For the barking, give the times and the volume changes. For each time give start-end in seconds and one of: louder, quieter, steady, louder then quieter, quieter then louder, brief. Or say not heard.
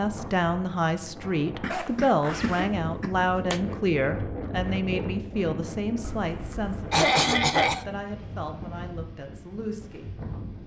not heard.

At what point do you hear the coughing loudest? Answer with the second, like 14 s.
7 s.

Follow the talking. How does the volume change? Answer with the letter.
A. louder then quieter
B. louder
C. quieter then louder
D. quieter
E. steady
D.